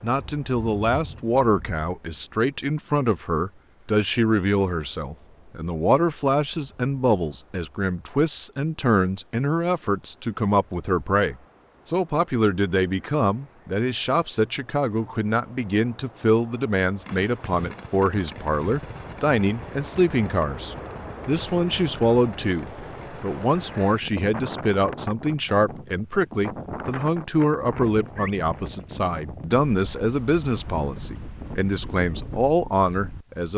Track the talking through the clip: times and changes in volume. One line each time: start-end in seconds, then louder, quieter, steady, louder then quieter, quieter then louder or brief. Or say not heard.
0.0-33.5 steady.